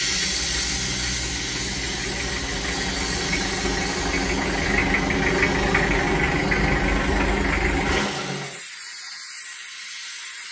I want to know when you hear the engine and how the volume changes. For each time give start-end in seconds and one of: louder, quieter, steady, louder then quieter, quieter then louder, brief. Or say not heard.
0.0-8.6 louder.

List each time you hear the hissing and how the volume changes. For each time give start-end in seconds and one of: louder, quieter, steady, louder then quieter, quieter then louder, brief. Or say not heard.
0.0-10.4 quieter.